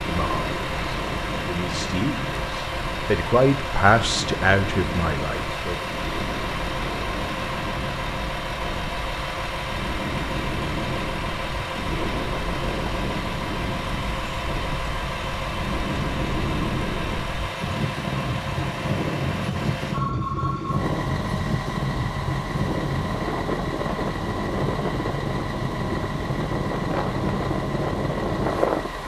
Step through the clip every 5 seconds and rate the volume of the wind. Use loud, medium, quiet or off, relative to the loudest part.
medium, medium, medium, loud, loud, loud.